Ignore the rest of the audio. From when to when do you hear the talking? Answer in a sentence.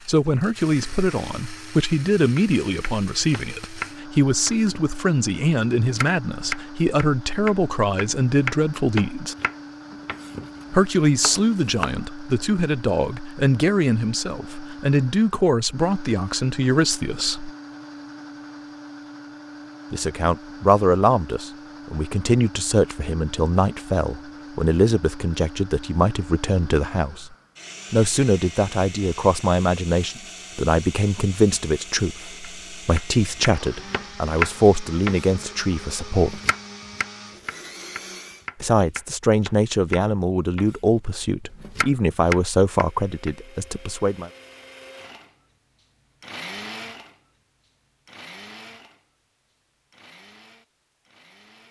You can hear the talking from 0.1 to 9.3 s, from 10.7 to 17.5 s, from 19.9 to 27.3 s, from 27.9 to 36.4 s and from 38.6 to 44.3 s.